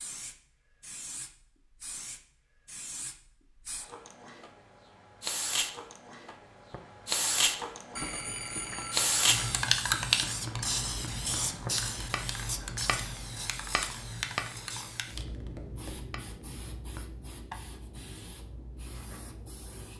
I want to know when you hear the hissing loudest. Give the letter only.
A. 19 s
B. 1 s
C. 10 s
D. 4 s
C.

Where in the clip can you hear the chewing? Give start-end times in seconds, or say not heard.
not heard.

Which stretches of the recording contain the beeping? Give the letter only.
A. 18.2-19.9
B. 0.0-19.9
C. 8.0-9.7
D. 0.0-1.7
C.